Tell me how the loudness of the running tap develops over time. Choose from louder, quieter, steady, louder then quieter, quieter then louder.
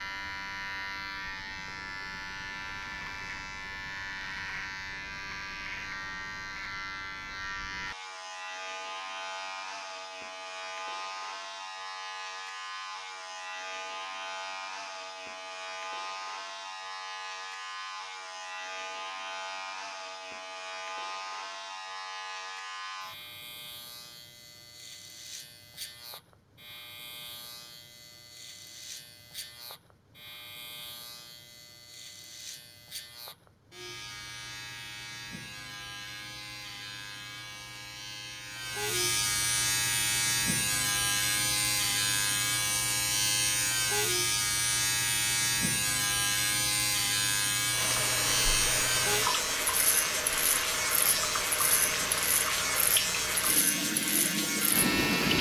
steady.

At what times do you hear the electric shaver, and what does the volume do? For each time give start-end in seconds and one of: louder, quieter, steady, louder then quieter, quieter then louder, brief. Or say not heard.
0.0-55.3 quieter then louder.